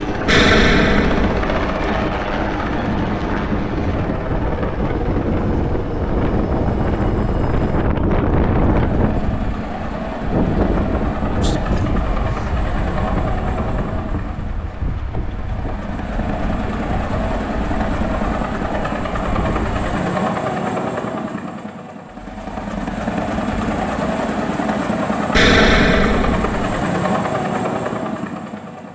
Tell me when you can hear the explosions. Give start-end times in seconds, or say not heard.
0.2-1.6, 25.3-26.6.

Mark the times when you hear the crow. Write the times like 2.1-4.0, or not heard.
not heard.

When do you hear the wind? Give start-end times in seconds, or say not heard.
0.0-19.8.